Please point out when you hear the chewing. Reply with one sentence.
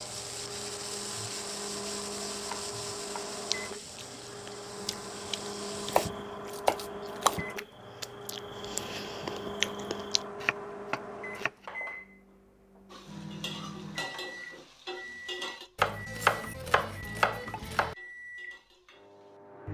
The chewing can be heard from 3.4 to 10.2 s.